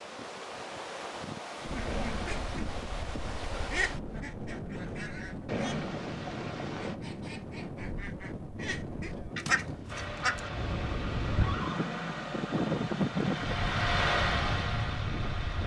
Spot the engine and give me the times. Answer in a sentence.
The engine can be heard from 9.8 to 15.6 s.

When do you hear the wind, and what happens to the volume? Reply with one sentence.
You can hear the wind from 0.0 to 15.6 s, getting louder.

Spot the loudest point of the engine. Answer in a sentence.
The volume of the engine peaks at 14 seconds.